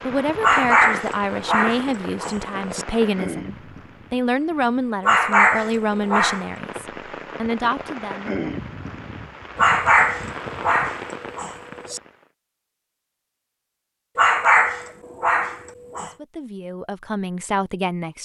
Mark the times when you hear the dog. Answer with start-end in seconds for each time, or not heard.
0.4-2.9, 5.0-6.5, 9.6-12.0, 14.2-16.1.